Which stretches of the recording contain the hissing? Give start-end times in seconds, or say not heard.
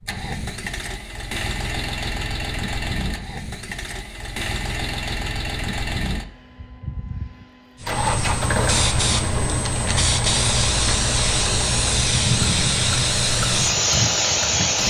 7.8-14.8.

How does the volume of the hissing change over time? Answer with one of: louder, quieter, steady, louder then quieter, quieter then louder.
steady.